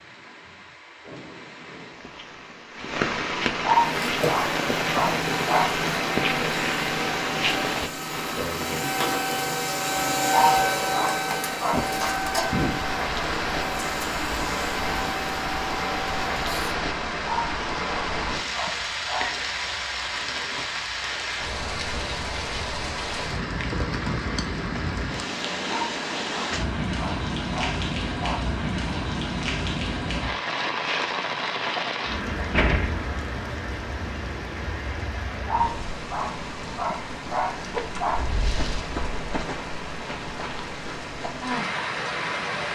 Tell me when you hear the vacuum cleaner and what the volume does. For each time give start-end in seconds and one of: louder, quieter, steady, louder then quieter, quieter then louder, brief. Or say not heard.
3.8-16.8 louder then quieter.